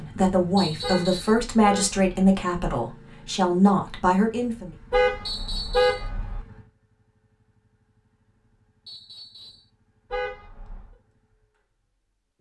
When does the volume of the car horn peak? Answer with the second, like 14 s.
6 s.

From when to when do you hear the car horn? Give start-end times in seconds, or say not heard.
0.8-2.1, 4.9-6.4, 10.1-10.9.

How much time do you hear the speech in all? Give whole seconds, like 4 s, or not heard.
5 s.